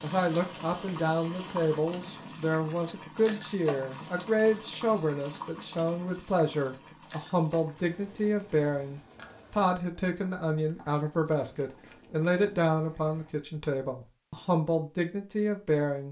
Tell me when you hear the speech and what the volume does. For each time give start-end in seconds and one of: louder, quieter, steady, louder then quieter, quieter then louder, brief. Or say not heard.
0.0-16.0 steady.